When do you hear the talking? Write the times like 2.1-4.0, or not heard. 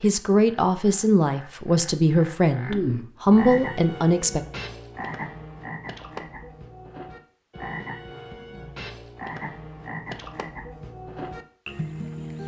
0.0-4.4.